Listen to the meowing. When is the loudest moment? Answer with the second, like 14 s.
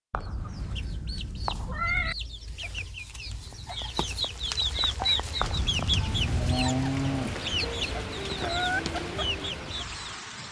2 s.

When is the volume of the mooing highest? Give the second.
7 s.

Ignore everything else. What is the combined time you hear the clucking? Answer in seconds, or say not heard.
10 s.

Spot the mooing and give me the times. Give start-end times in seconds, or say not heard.
5.5-7.5.